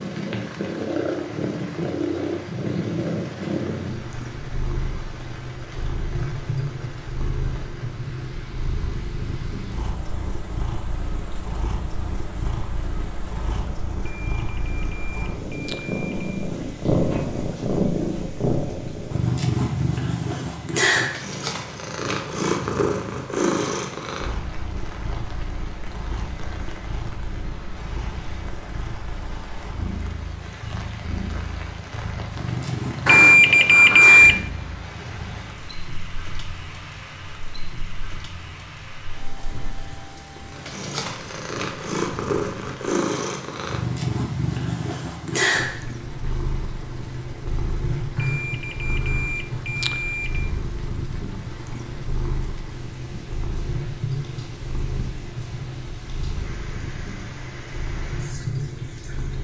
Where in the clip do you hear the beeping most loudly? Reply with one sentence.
The volume of the beeping peaks at 34 seconds.